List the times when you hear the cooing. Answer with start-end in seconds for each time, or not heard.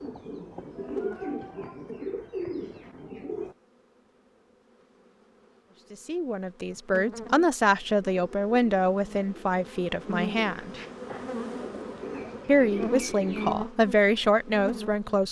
0.0-3.5, 7.8-13.6.